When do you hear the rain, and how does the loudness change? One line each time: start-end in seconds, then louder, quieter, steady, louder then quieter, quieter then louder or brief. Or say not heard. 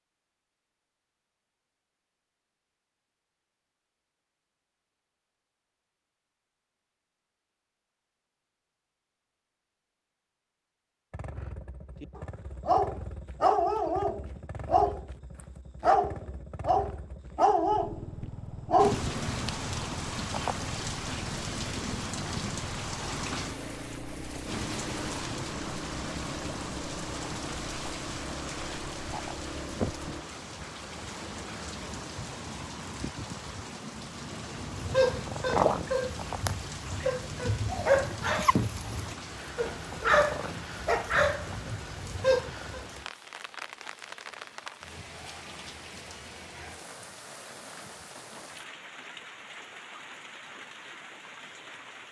18.8-52.0 quieter.